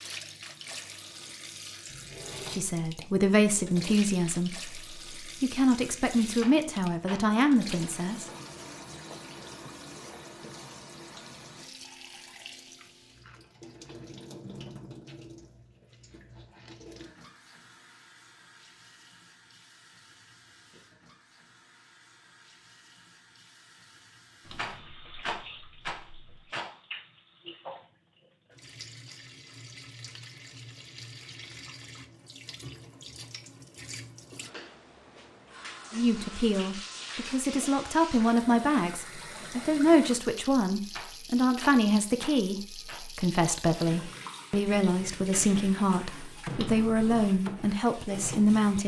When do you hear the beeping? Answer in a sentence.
The beeping can't be heard in this clip.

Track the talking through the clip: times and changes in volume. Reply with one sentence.
You can hear the talking from 2.5 to 8.2 s, at a steady volume; and from 35.9 to 48.8 s, at a steady volume.